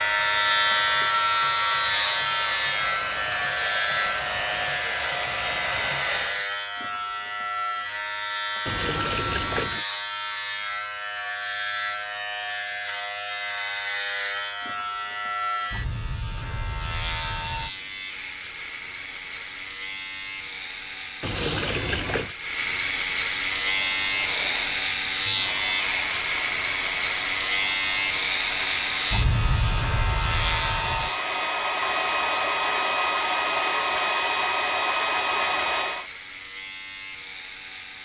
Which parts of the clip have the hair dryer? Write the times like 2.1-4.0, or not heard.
0.0-6.5, 23.6-36.1.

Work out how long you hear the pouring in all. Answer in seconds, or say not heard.
2 s.